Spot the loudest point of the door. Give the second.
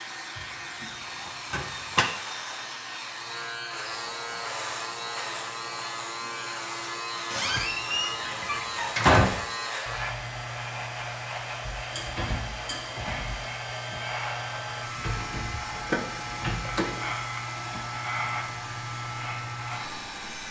9 s.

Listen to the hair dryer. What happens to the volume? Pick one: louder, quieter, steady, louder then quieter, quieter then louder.
steady.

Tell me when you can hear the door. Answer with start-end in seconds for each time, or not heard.
1.5-2.0, 7.3-9.3, 15.8-17.1.